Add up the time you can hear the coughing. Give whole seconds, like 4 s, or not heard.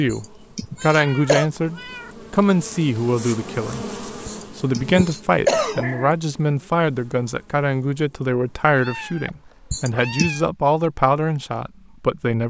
4 s.